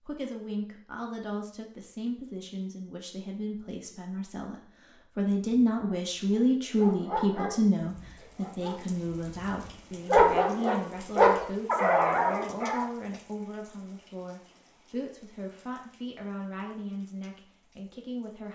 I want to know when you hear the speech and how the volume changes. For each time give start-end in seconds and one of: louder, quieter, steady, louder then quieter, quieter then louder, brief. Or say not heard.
0.0-18.4 louder then quieter.